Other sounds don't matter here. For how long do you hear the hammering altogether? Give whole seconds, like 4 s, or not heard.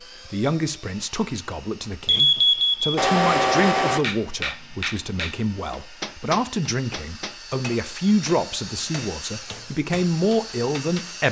7 s.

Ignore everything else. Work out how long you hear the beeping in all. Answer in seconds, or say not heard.
3 s.